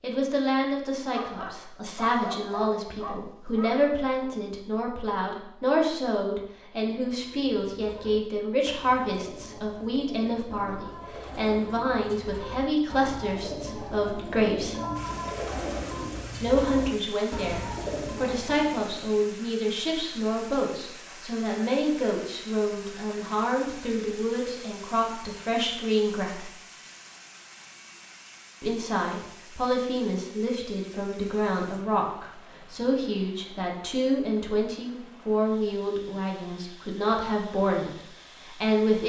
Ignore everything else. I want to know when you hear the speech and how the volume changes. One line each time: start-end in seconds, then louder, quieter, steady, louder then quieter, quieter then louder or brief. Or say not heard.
0.0-14.8 steady
16.4-26.5 steady
28.6-39.0 steady.